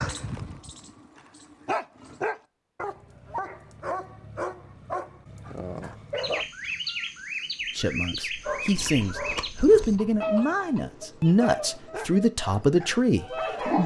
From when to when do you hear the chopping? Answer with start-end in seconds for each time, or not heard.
not heard.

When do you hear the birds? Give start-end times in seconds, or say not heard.
6.2-13.8.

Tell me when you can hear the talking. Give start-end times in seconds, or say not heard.
7.8-13.8.